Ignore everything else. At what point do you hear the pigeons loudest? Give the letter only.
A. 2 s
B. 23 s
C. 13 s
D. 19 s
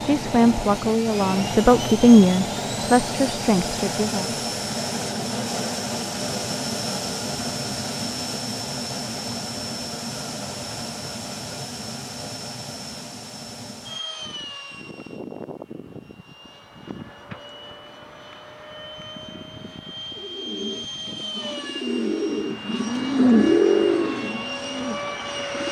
B.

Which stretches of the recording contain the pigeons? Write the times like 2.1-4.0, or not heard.
20.1-25.6.